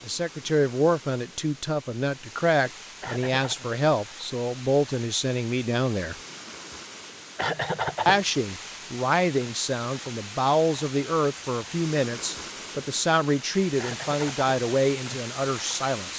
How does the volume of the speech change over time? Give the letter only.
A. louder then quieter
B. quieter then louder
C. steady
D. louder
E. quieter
C.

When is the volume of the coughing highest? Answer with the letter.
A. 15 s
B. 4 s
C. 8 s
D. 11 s
C.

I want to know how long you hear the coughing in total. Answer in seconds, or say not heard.
2 s.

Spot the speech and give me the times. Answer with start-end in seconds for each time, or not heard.
0.0-6.2, 8.1-16.1.